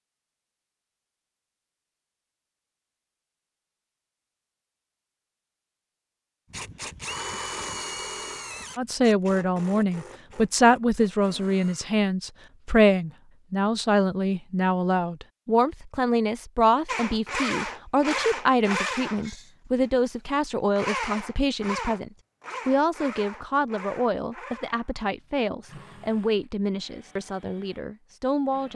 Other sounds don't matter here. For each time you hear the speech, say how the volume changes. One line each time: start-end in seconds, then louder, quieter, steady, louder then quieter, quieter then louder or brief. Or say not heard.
8.8-28.7 quieter.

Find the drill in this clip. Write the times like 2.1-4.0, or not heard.
6.5-11.9, 16.9-19.4, 20.8-28.7.